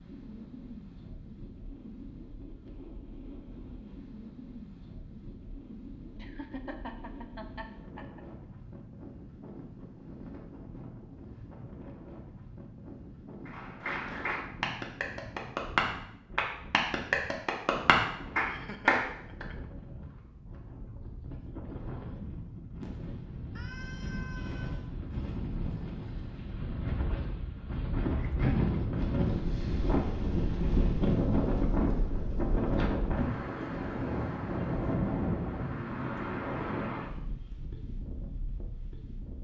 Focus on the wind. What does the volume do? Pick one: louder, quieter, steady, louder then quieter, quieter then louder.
louder.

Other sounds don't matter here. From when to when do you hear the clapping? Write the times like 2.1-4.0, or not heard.
13.4-19.4.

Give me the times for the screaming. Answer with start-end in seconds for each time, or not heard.
23.6-24.9.